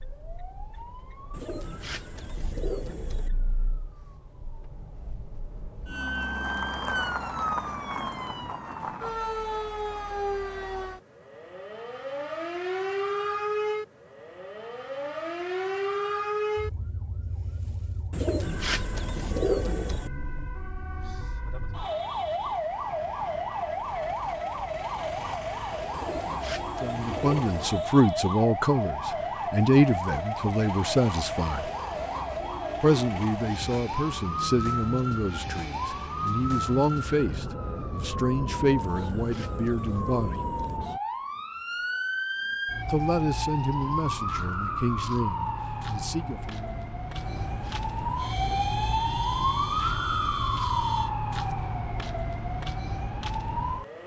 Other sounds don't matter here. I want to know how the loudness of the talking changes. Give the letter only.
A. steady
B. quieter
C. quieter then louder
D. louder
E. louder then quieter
B.